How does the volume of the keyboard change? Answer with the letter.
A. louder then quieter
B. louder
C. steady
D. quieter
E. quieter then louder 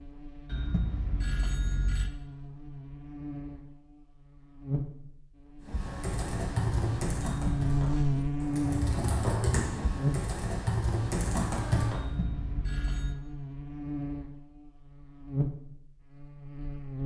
E.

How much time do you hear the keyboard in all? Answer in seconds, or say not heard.
6 s.